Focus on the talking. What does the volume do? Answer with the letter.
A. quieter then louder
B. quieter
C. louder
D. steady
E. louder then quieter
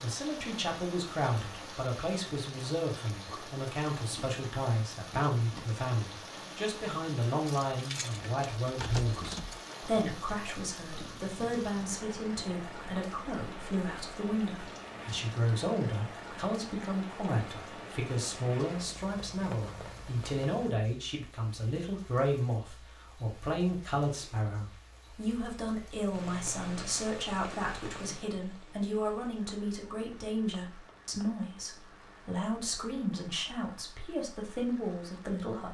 D.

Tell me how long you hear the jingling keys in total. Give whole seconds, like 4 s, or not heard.
2 s.